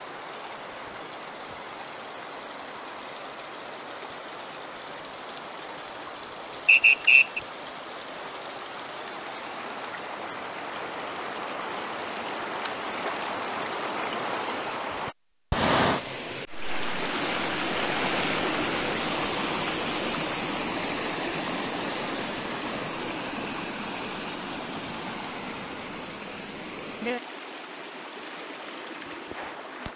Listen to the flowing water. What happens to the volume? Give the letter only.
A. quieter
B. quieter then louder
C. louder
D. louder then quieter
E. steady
D.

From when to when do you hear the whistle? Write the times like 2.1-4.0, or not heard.
6.7-7.4.